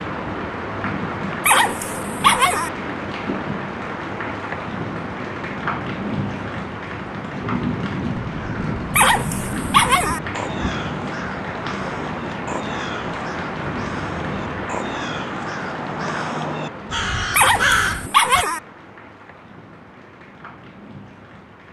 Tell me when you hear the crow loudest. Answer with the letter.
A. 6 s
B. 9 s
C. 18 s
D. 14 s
C.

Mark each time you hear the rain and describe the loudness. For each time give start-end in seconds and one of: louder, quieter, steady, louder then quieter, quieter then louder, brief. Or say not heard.
0.0-21.6 quieter.